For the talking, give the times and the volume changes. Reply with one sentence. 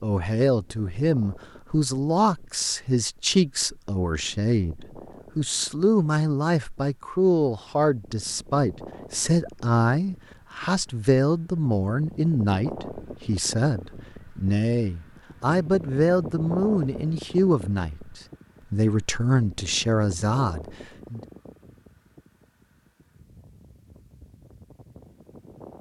The talking can be heard from 0.0 to 21.2 s, at a steady volume.